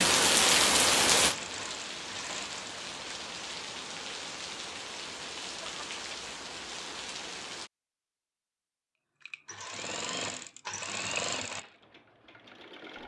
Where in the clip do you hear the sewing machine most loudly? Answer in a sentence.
The loudest moment of the sewing machine is at 11 seconds.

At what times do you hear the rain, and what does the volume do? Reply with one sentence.
The rain can be heard from 0.0 to 7.7 s, getting quieter.